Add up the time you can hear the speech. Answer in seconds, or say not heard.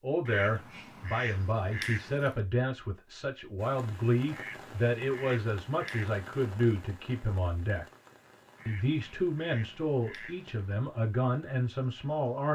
12 s.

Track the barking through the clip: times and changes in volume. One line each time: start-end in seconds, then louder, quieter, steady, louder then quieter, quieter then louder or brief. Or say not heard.
not heard.